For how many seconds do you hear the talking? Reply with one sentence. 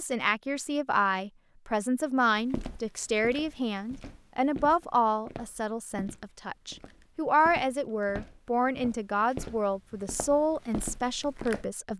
You can hear the talking for 12 seconds altogether.